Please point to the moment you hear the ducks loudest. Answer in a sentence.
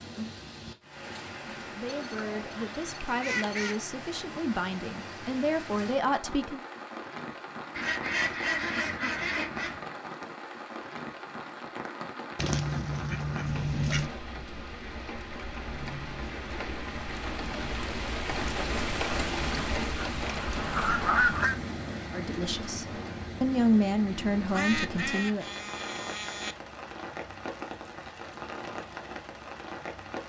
The loudest moment of the ducks is at 21 seconds.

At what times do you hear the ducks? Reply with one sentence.
You can hear the ducks from 1.9 to 3.8 s, from 7.8 to 9.8 s, from 12.3 to 14.1 s, from 20.2 to 21.6 s and from 24.5 to 26.6 s.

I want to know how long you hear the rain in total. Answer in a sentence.
The rain can be heard for 30 seconds in total.